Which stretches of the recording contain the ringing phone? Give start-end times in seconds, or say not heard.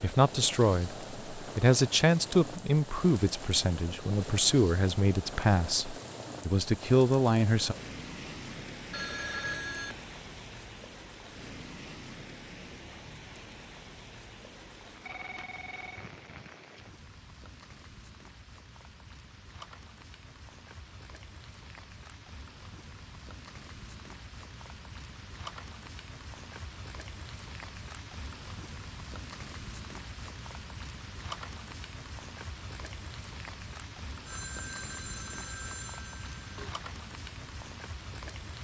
8.9-10.0, 15.0-16.1, 34.2-36.8.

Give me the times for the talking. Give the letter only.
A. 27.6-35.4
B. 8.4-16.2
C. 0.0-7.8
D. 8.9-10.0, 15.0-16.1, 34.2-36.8
C.